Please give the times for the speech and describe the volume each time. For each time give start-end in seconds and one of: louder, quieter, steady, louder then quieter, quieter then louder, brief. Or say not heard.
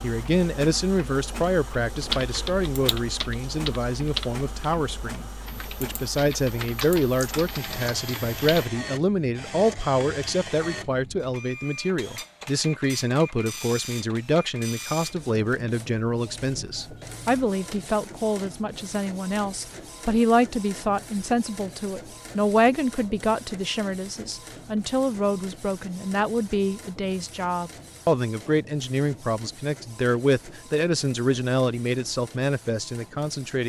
0.0-33.6 steady.